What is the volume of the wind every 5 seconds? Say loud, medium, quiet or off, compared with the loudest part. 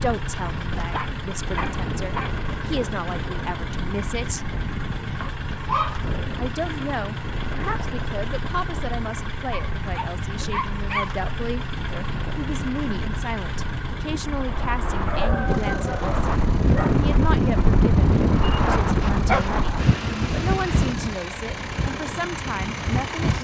quiet, quiet, quiet, loud, medium.